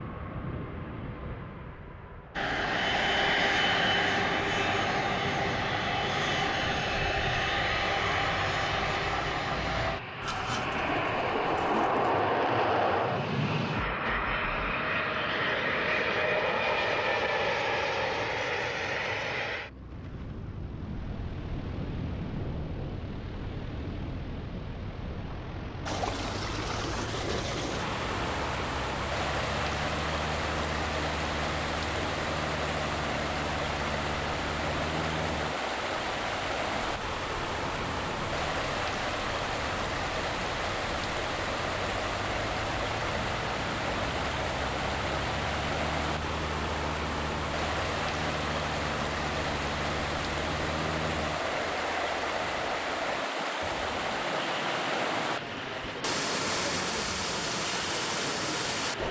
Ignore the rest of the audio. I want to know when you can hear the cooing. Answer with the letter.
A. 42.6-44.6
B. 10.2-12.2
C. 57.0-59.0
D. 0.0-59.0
B.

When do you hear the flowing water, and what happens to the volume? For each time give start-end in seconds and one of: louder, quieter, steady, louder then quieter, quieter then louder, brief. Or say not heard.
25.9-59.0 steady.